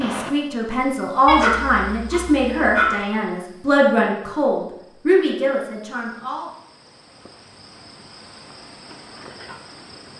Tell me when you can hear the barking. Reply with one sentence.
The barking can be heard from 1.2 to 3.0 s.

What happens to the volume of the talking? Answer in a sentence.
The volume of the talking stays about the same.